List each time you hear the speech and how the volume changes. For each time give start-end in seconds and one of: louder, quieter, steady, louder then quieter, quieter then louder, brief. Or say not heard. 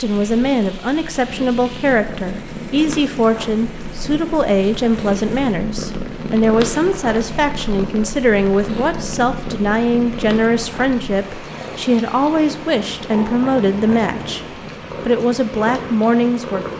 0.0-16.7 steady.